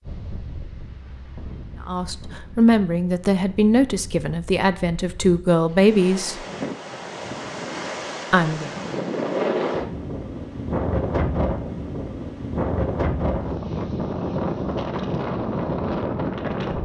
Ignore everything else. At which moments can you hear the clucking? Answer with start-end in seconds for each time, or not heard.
not heard.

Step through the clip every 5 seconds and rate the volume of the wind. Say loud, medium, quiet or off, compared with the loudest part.
quiet, loud, loud, loud.